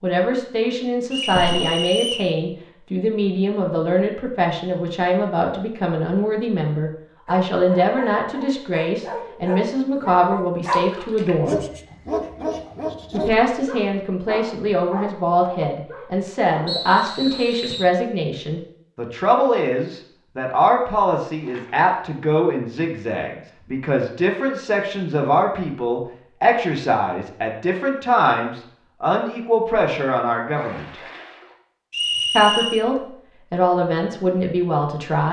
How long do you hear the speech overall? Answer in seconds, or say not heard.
32 s.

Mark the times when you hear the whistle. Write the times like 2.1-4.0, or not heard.
1.1-2.3, 16.6-17.9, 31.9-32.9.